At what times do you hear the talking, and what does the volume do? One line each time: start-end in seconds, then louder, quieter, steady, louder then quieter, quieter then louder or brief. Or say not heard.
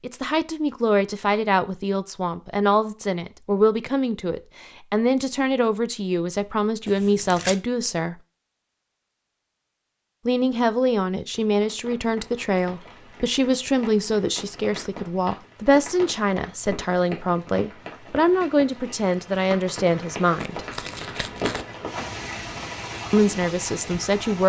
0.0-8.2 steady
10.2-20.6 steady
23.1-24.4 brief.